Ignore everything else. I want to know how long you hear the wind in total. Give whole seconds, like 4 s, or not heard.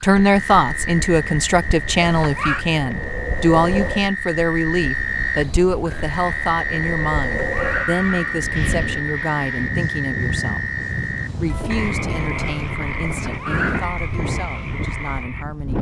16 s.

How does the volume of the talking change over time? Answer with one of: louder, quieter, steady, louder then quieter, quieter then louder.
quieter.